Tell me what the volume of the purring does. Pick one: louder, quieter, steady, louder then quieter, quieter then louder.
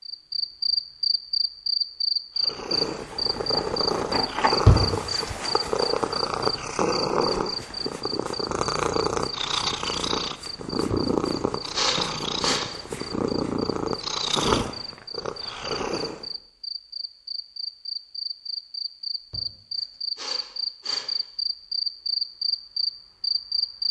steady.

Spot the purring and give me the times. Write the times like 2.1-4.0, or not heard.
2.4-16.2.